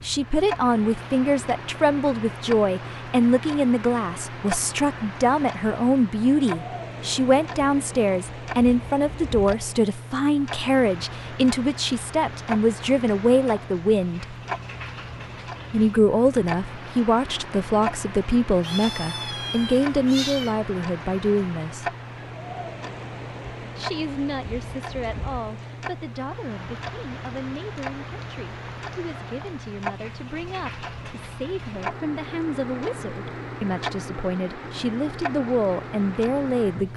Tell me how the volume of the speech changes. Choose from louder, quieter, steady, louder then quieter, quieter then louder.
quieter then louder.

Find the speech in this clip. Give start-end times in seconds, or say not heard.
0.0-14.3, 15.7-21.9, 23.8-36.9.